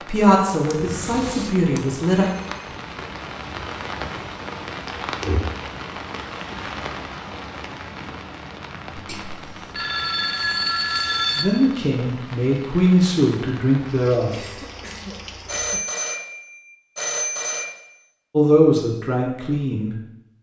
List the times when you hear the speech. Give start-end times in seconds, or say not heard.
0.1-2.2, 11.3-14.4, 18.3-19.9.